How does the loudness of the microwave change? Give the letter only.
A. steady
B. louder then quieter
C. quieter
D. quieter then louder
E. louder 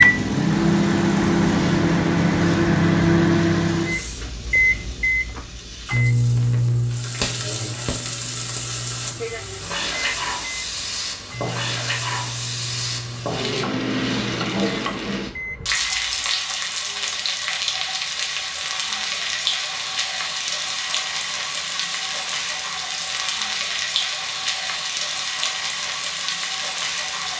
C.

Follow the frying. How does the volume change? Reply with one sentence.
The volume of the frying goes up.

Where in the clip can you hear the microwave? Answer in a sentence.
You can hear the microwave from 0.0 to 16.4 s.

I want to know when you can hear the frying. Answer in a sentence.
You can hear the frying from 0.0 to 27.3 s.